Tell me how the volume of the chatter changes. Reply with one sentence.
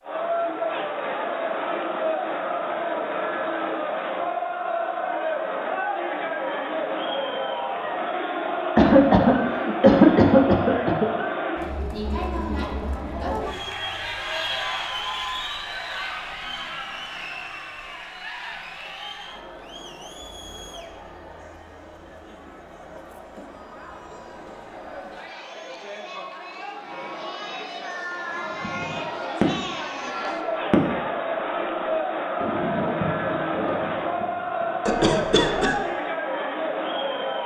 The loudness of the chatter goes down, then up.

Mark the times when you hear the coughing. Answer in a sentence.
The coughing can be heard from 8.8 to 11.1 s and from 34.9 to 35.8 s.